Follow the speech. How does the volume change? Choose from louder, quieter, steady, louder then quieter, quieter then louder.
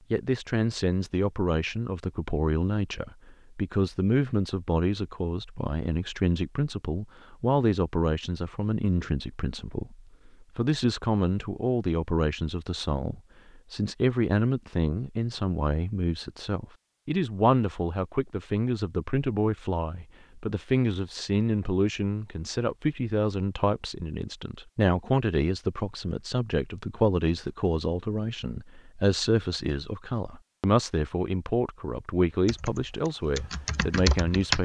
steady.